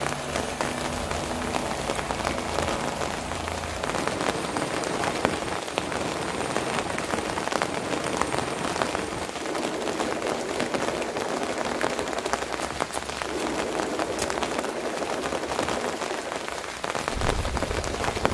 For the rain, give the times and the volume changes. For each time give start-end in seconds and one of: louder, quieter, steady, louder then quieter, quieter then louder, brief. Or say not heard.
0.0-18.2 steady.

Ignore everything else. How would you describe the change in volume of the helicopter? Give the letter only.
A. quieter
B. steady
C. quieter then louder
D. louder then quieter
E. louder
B.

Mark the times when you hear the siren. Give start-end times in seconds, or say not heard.
not heard.